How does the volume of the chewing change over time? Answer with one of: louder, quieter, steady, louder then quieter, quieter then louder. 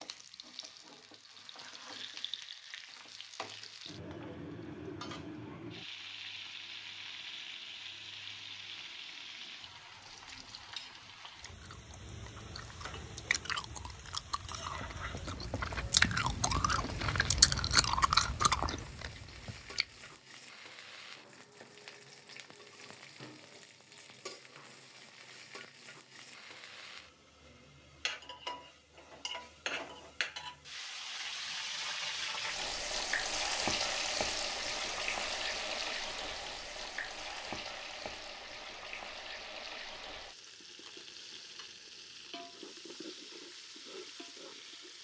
louder.